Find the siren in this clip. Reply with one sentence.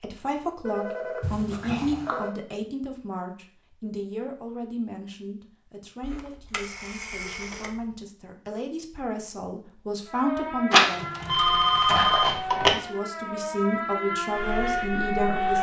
You can hear the siren from 10.1 to 15.5 s.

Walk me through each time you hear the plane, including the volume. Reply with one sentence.
The plane can't be heard in this clip.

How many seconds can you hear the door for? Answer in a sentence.
The door can be heard for 2 seconds in total.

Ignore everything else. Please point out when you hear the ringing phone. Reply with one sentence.
You can hear the ringing phone from 0.7 to 2.4 s, from 6.0 to 7.9 s and from 10.7 to 12.7 s.